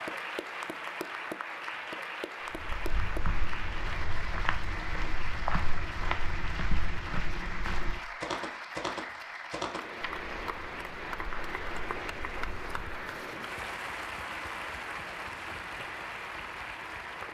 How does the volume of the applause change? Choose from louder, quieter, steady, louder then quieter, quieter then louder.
steady.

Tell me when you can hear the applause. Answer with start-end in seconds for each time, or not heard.
0.0-17.2.